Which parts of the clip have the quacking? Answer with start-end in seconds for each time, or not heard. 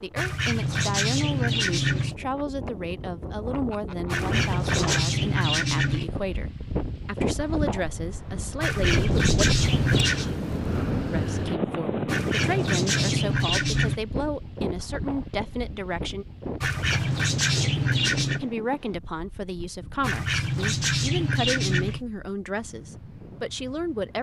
0.1-2.1, 4.0-6.1, 8.6-10.3, 12.1-14.0, 16.6-18.5, 20.0-22.1.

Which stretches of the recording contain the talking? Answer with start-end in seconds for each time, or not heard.
0.0-9.2, 11.1-16.2, 18.4-24.1.